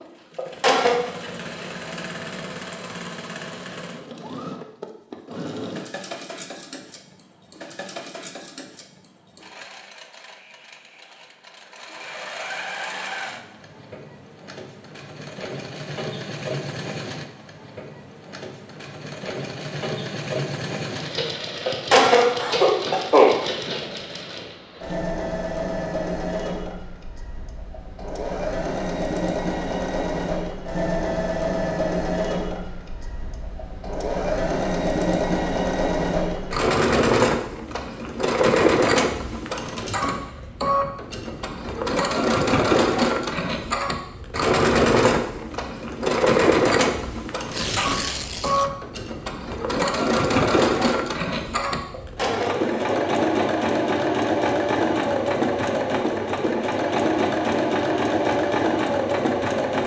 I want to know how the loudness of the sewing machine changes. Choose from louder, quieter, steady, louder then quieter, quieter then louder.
louder.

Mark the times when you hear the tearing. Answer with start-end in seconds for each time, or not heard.
47.5-48.7.